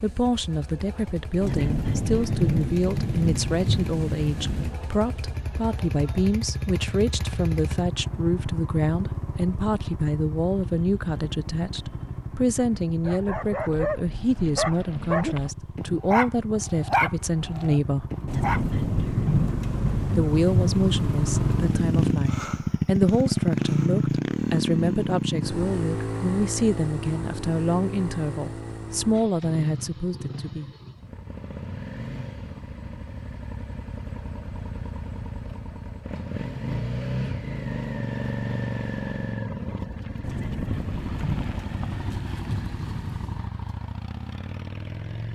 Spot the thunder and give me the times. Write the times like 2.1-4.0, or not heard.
1.4-4.8, 18.2-22.1, 40.2-43.5.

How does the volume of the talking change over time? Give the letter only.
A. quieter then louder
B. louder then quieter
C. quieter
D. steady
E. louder
D.